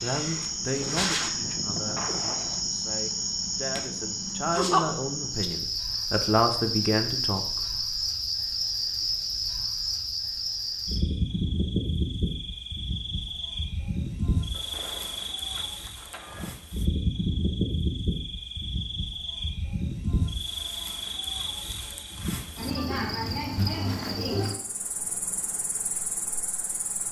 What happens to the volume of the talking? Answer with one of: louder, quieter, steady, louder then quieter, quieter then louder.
quieter then louder.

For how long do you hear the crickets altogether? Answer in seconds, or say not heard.
27 s.